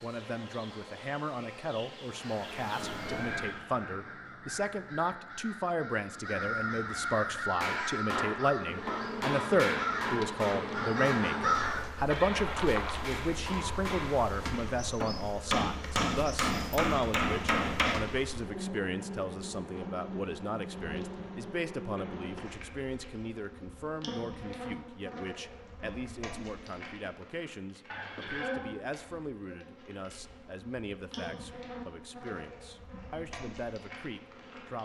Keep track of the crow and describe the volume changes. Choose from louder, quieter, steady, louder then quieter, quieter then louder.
louder.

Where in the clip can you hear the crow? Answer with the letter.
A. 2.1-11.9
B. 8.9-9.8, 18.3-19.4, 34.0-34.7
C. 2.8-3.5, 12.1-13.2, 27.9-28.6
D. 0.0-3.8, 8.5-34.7
A.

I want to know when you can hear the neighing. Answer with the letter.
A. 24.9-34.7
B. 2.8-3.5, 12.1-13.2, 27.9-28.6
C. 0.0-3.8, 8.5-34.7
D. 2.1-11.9
B.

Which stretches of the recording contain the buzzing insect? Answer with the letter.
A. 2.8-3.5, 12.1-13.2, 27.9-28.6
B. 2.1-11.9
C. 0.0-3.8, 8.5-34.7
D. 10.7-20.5
C.